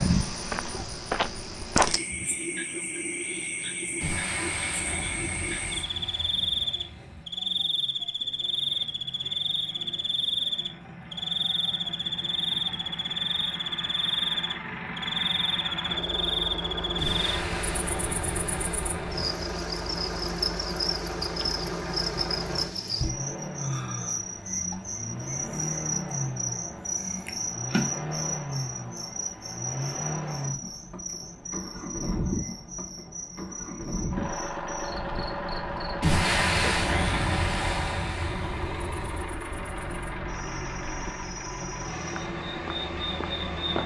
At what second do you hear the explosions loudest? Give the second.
36 s.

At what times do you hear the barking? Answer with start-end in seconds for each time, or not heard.
not heard.